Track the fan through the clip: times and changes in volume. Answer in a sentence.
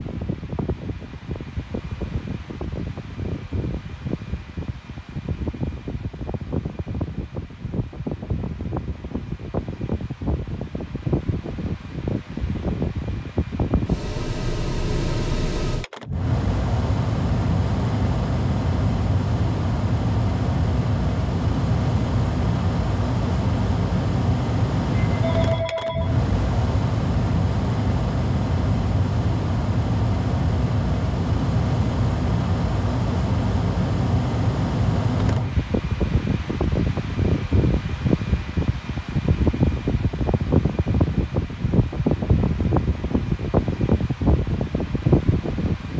You can hear the fan from 0.0 to 45.9 s, getting louder.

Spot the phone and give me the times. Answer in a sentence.
You can hear the phone from 25.0 to 26.1 s.